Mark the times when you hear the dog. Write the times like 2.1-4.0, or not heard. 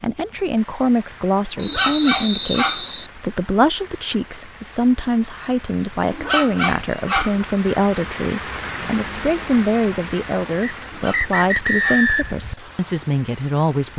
1.6-2.9, 6.1-7.5, 10.8-12.1.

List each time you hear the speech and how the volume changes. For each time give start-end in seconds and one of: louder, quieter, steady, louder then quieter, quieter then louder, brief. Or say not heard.
0.0-13.9 steady.